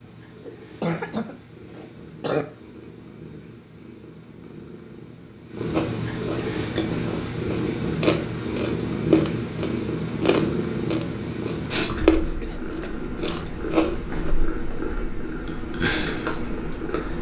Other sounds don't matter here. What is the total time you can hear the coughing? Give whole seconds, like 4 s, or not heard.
3 s.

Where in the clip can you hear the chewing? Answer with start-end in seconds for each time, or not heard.
5.7-14.3.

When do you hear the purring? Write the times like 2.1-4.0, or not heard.
0.0-17.1.